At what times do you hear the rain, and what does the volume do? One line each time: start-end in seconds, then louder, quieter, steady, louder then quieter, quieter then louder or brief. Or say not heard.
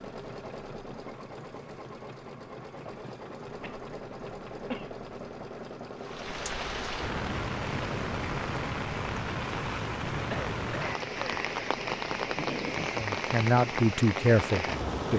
6.0-15.1 steady.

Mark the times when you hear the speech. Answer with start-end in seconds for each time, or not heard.
12.9-15.1.